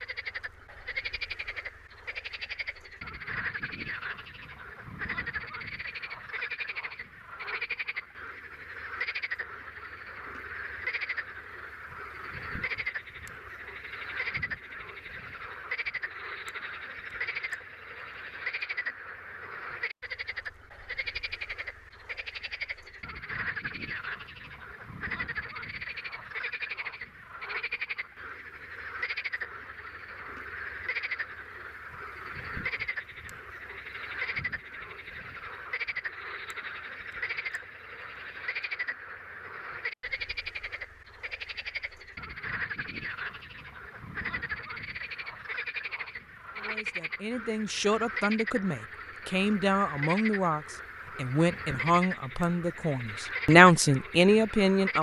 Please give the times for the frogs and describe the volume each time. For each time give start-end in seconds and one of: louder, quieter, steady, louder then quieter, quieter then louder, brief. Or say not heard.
0.0-54.9 steady.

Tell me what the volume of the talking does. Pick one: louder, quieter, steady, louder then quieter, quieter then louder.
louder.